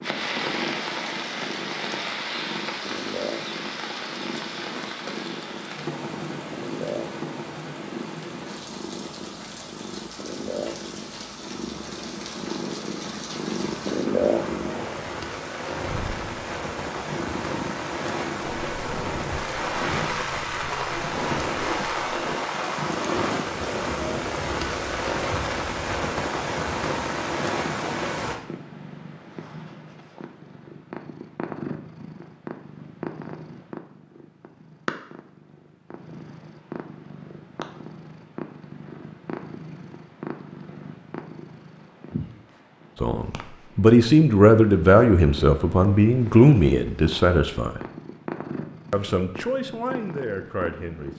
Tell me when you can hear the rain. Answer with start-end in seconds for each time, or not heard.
0.0-28.4.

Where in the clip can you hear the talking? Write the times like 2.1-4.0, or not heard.
43.0-47.8, 48.9-51.1.